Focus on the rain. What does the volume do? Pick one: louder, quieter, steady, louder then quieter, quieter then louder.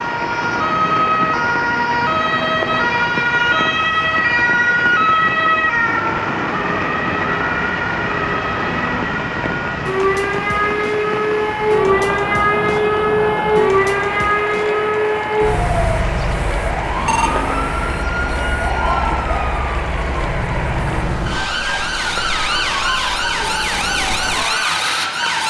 steady.